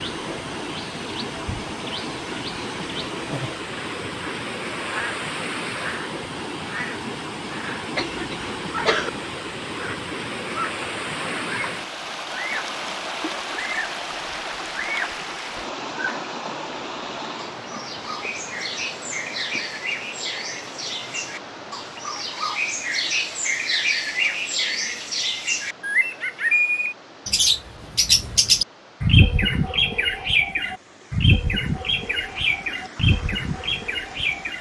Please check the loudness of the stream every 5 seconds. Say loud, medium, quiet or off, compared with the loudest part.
loud, loud, loud, loud, medium, quiet, quiet.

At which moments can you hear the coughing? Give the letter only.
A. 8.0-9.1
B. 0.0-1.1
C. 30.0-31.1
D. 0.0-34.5
A.